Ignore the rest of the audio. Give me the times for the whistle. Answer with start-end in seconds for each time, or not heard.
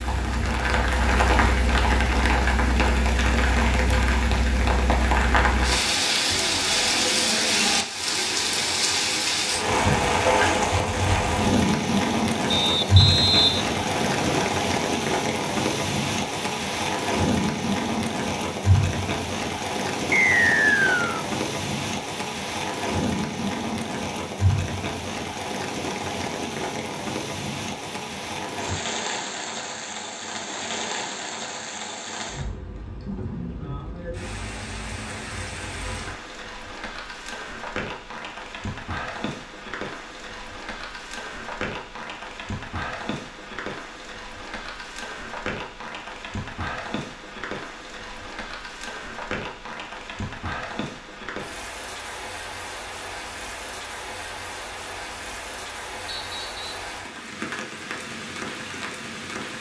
12.5-14.5, 20.1-21.2, 56.0-56.6.